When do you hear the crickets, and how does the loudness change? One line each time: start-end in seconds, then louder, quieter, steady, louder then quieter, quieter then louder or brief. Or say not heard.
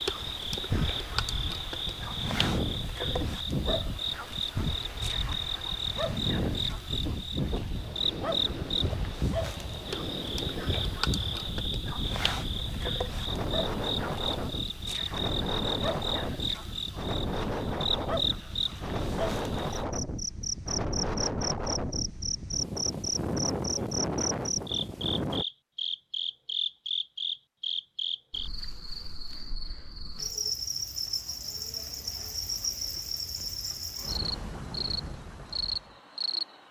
0.0-36.6 steady.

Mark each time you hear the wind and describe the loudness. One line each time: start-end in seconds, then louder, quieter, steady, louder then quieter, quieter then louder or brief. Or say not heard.
0.0-25.4 steady.